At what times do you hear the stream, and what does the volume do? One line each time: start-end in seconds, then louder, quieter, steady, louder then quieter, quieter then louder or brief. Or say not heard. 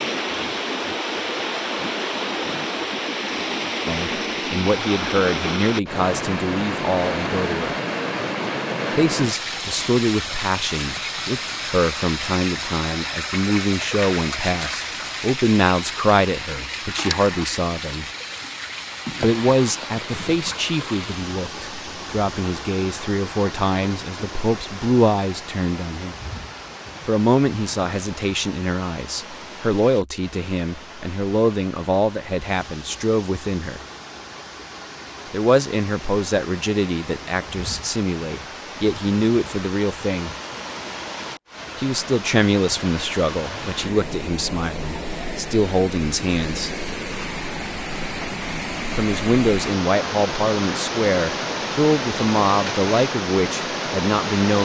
0.0-54.5 quieter then louder.